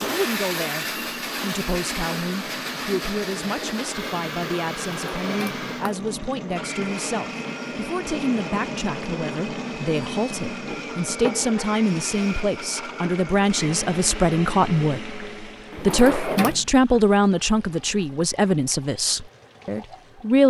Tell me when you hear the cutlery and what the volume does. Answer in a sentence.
The cutlery can't be heard in this clip.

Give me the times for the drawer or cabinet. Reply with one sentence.
The drawer or cabinet can be heard from 4.9 to 6.0 s and from 15.7 to 16.6 s.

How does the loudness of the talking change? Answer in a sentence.
The loudness of the talking goes up.